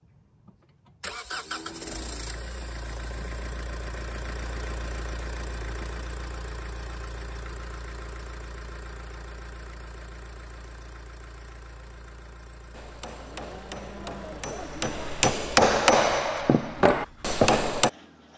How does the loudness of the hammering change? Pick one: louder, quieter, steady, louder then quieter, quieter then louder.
louder.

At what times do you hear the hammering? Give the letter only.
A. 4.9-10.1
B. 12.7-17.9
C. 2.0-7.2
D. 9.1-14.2
B.